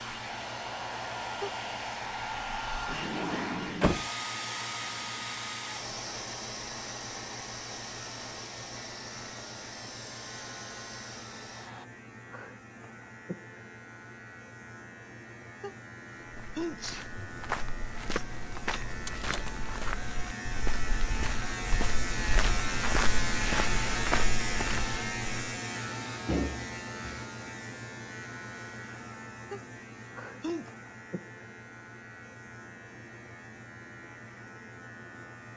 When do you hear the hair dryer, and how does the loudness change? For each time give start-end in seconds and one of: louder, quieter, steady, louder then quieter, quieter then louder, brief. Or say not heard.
0.0-11.8 quieter.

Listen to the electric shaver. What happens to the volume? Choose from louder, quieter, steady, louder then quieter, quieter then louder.
louder then quieter.